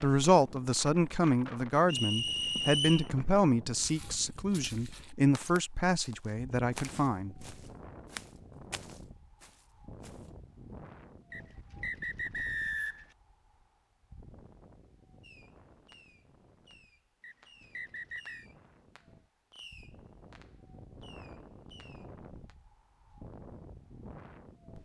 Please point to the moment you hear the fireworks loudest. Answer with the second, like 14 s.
20 s.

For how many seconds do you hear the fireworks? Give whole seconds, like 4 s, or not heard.
7 s.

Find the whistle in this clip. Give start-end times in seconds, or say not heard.
1.9-3.1, 11.3-13.1, 17.2-18.4.